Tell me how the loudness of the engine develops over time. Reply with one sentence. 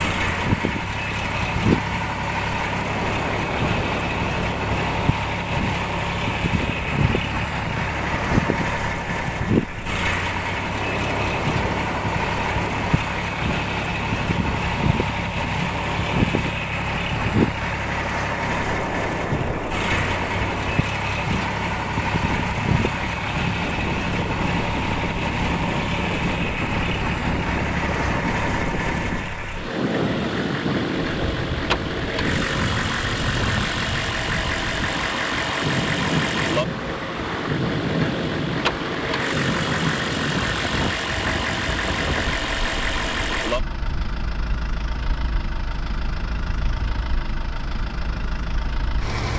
The loudness of the engine stays about the same.